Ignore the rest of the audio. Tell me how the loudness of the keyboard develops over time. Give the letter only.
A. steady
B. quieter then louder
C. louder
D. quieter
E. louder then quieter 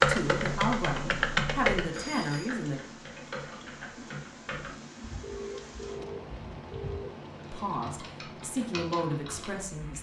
D.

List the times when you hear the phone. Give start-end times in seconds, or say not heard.
1.9-2.5, 5.2-7.2.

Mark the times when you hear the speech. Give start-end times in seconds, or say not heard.
0.1-2.8, 7.5-9.9.